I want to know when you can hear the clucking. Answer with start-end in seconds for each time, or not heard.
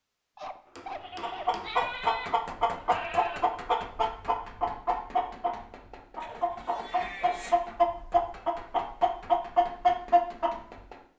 1.2-10.8.